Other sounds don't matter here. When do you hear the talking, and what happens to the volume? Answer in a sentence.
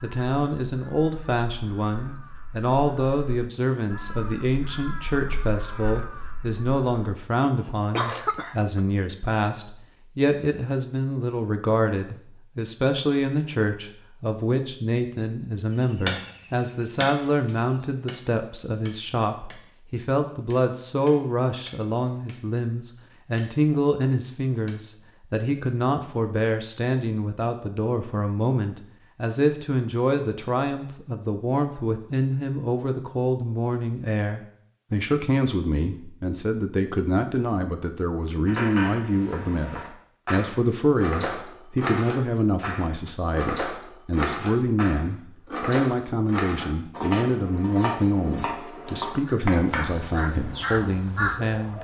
You can hear the talking from 0.0 to 51.7 s, at a steady volume.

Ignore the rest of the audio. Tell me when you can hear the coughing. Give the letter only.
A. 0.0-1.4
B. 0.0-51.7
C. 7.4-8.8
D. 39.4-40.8
C.